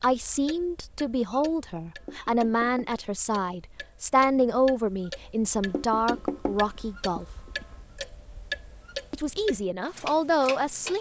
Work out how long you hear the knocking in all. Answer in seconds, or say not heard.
3 s.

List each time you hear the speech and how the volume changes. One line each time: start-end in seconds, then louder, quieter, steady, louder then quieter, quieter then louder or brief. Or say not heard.
0.0-7.5 steady
9.1-10.9 brief.